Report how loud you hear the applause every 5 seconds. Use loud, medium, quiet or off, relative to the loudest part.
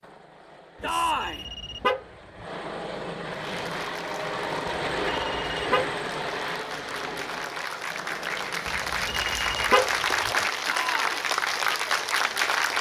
quiet, medium, loud.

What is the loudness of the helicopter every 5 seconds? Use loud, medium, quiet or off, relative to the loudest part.
loud, loud, quiet.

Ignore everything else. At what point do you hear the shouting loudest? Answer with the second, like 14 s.
1 s.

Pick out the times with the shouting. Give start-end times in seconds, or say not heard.
0.8-1.4, 10.7-11.2.